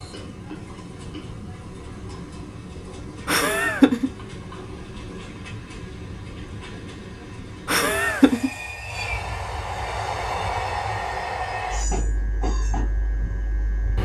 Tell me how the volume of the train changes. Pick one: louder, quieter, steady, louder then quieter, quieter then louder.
louder.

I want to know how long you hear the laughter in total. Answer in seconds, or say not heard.
2 s.